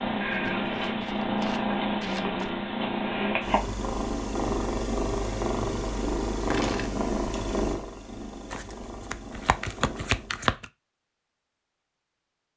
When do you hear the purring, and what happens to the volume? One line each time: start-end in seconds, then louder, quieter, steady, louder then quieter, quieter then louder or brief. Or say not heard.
0.0-10.6 quieter.